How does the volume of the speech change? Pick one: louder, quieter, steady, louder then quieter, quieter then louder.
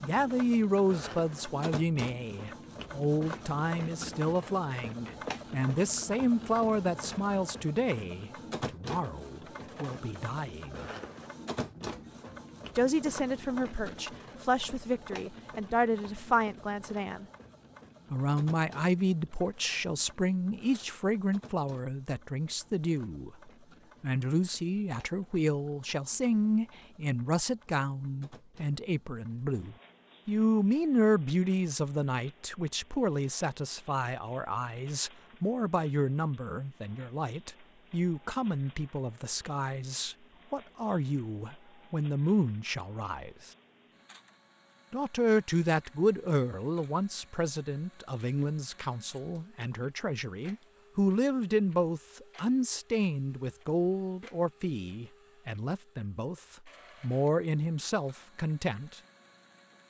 steady.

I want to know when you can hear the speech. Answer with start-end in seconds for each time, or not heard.
0.0-10.9, 12.8-17.2, 18.1-43.5, 44.9-59.0.